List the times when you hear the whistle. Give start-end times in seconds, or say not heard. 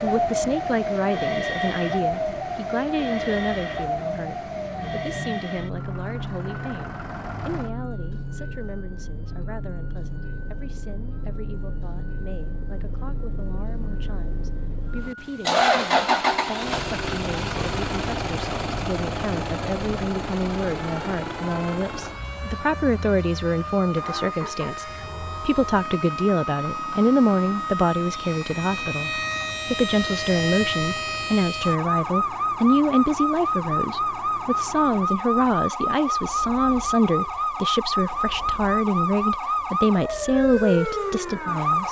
not heard.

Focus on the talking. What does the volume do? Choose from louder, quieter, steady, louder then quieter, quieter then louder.
quieter then louder.